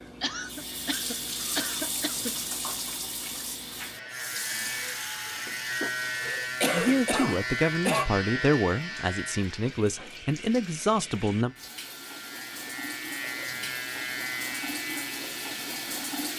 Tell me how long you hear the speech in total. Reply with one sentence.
The speech can be heard for 5 seconds in total.